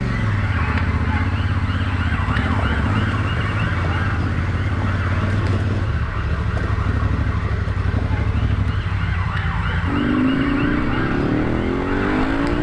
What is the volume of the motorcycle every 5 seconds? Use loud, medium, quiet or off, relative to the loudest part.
medium, medium, loud.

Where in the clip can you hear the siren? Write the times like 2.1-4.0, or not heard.
0.0-12.5.